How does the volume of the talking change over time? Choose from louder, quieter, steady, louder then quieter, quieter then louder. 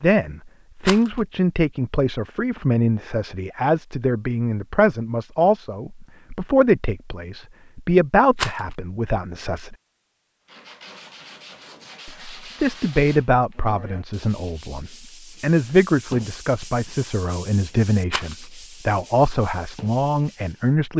steady.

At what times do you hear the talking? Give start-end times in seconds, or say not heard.
0.0-9.8, 12.1-20.9.